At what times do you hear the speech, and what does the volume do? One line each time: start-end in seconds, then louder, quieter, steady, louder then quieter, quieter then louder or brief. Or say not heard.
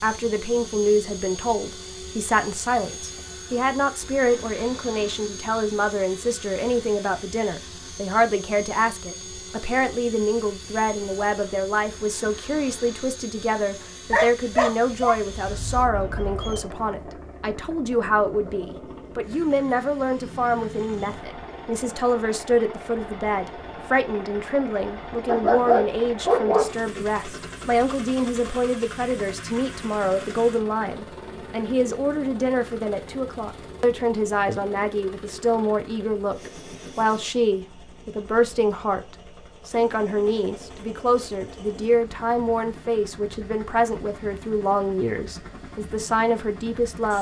0.0-47.1 steady.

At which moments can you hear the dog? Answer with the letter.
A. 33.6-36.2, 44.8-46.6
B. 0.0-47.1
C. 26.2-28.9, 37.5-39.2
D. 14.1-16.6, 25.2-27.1
D.